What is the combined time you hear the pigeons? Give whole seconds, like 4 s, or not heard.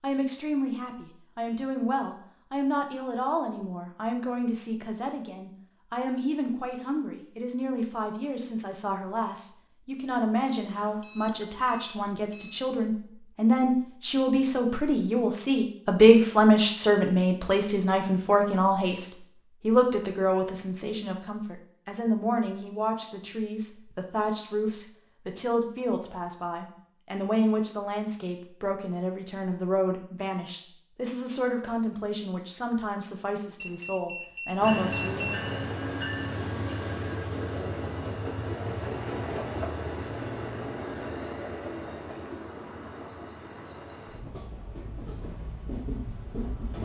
not heard.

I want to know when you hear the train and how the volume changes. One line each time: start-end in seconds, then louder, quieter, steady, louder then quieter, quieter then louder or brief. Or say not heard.
34.6-46.7 quieter.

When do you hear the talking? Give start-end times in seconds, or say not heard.
0.0-35.3.